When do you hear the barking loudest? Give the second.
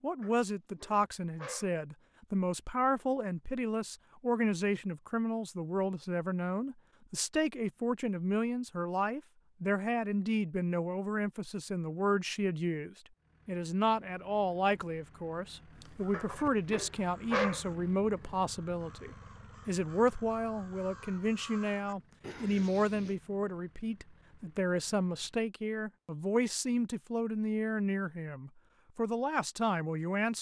17 s.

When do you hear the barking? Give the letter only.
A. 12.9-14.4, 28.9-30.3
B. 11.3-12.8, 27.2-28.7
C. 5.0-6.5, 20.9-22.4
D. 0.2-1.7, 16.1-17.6
D.